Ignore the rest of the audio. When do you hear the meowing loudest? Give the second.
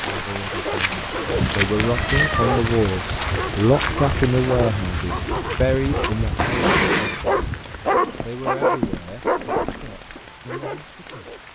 7 s.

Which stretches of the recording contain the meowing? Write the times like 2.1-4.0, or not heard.
0.9-2.6, 6.3-7.2.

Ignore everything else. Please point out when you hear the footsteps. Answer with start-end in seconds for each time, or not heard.
1.2-10.1.